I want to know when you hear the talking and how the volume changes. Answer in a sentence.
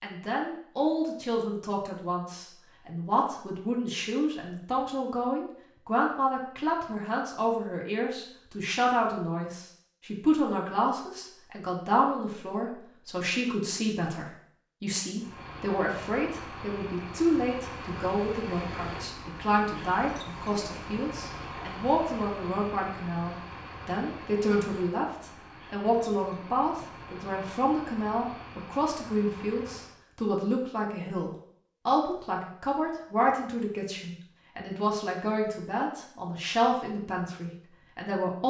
The talking can be heard from 0.0 to 38.4 s, at a steady volume.